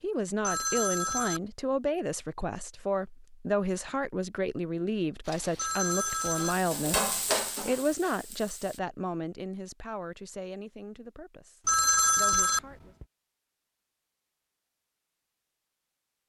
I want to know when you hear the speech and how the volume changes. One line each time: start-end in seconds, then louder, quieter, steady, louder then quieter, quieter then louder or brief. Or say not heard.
0.0-12.9 quieter.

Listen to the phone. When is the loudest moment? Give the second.
12 s.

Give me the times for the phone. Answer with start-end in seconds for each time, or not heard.
0.4-1.4, 5.5-7.0, 11.7-13.1.